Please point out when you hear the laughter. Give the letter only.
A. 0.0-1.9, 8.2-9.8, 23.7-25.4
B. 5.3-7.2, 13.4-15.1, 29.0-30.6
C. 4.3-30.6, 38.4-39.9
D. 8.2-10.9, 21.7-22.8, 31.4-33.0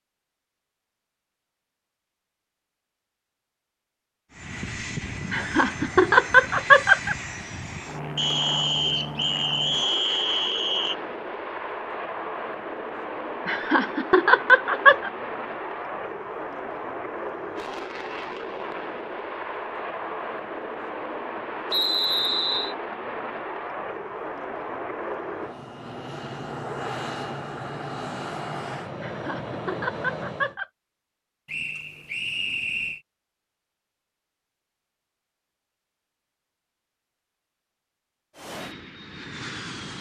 B.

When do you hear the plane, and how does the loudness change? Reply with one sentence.
The plane can be heard from 4.3 to 30.6 s, at a steady volume; and briefly from 38.4 to 39.9 s.